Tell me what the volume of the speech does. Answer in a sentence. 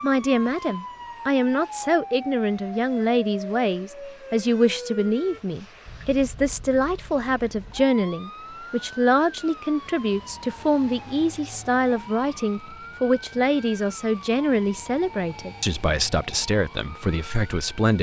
The volume of the speech stays about the same.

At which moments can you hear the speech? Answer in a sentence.
You can hear the speech from 0.0 to 17.9 s.